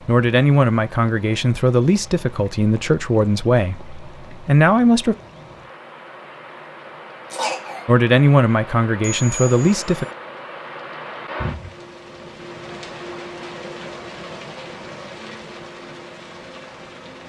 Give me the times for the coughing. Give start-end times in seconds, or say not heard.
7.3-7.8.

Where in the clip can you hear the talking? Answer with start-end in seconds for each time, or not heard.
0.1-5.2, 7.8-10.1.